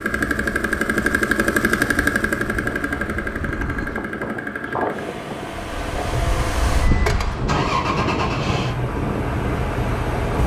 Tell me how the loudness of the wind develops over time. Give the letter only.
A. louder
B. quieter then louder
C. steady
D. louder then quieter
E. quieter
A.